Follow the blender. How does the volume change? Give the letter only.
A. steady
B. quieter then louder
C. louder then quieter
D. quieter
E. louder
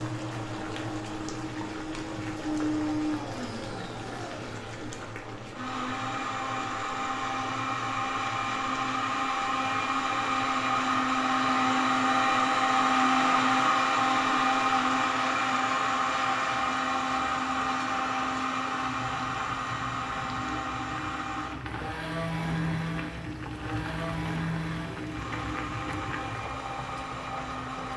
C.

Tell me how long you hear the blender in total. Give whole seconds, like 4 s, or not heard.
28 s.